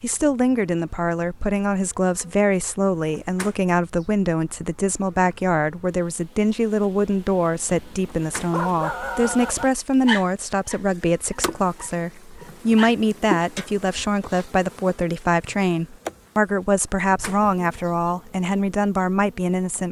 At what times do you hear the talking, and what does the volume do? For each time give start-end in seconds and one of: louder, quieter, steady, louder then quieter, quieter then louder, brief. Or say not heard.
0.0-19.8 steady.